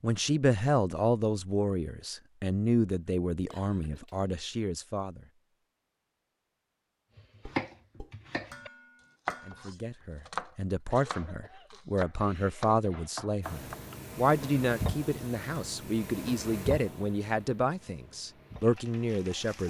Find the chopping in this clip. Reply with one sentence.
You can hear the chopping from 7.2 to 13.9 s.